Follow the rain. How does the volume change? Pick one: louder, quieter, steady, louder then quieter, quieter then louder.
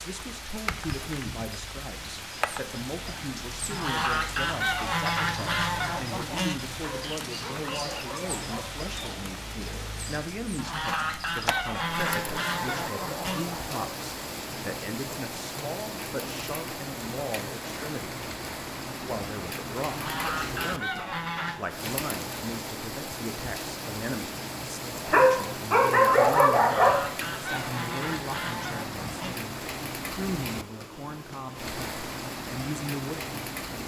steady.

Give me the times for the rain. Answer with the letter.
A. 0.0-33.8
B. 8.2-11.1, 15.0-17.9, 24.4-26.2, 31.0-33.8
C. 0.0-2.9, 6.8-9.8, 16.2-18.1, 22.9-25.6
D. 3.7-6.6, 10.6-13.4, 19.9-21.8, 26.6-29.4
A.